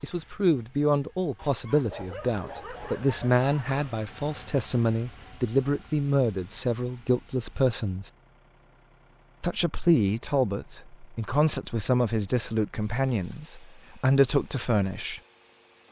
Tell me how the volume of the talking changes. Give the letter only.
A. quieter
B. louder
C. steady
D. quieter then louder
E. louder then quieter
C.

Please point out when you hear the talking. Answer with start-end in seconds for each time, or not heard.
0.0-8.1, 9.4-15.2.